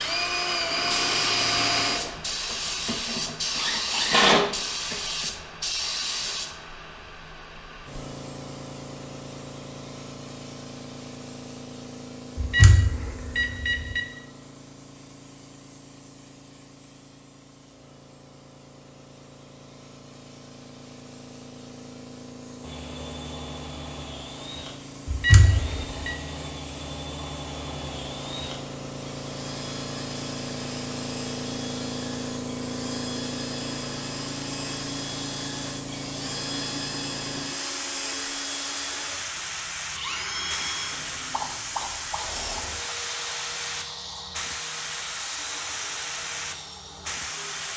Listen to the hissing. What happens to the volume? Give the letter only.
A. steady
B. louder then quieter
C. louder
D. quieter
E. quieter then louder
E.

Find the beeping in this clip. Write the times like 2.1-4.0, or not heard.
12.3-14.0, 25.1-26.1.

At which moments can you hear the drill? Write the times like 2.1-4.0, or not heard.
0.0-5.3, 22.6-47.7.